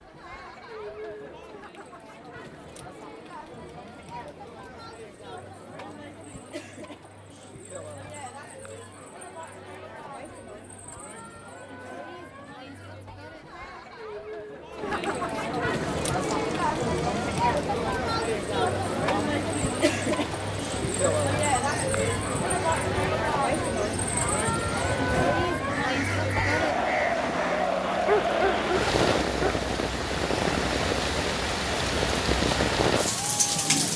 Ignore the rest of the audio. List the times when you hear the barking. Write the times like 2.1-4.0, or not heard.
28.1-29.6.